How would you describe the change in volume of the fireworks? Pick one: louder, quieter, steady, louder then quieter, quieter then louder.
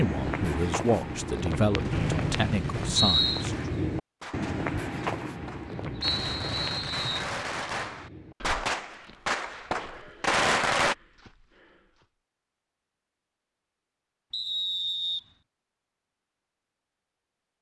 louder.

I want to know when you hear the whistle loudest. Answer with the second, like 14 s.
3 s.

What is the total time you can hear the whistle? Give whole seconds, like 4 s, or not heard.
4 s.